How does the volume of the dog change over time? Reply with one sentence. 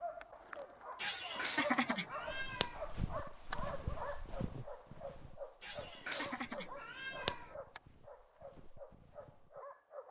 The volume of the dog goes down.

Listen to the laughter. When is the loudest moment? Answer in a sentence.
The volume of the laughter peaks at 2 seconds.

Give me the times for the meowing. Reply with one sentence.
The meowing can be heard from 1.4 to 2.9 s and from 6.0 to 7.5 s.